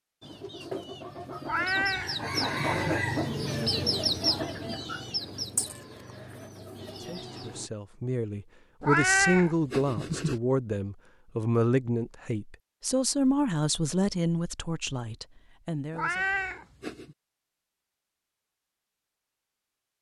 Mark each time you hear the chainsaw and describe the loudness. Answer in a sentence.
The chainsaw can't be heard in this clip.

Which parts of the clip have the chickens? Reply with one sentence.
You can hear the chickens from 0.2 to 7.7 s.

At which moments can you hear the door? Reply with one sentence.
The door can't be heard in this clip.